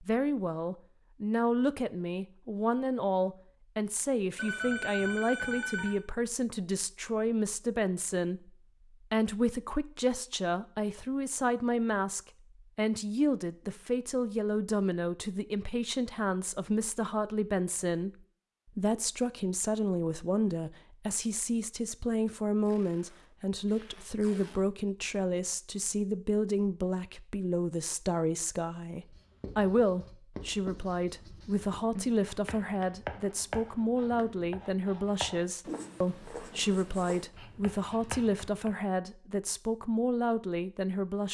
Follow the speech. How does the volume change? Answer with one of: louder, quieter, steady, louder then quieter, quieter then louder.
steady.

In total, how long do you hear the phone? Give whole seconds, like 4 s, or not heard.
2 s.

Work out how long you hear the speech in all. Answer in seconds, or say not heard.
41 s.